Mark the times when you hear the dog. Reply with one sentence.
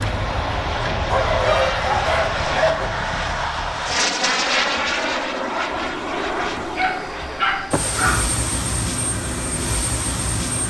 The dog can be heard from 1.1 to 2.9 s and from 6.8 to 8.2 s.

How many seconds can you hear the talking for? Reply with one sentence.
You can't hear the talking here.